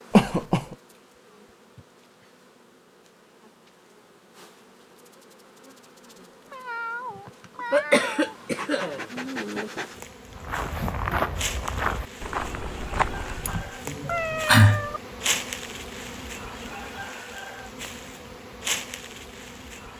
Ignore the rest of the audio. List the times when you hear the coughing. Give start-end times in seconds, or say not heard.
0.1-0.8, 7.7-9.7, 13.4-14.8.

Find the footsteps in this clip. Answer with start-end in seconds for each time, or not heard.
10.3-13.8.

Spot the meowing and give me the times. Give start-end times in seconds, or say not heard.
6.5-8.3, 14.1-15.0.